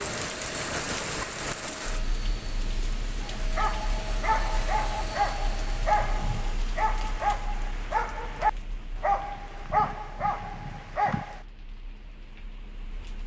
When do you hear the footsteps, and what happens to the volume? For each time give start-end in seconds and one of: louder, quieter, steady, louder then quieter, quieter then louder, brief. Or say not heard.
not heard.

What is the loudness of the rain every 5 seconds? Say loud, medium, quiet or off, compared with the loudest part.
loud, medium, quiet.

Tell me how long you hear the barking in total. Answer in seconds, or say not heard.
8 s.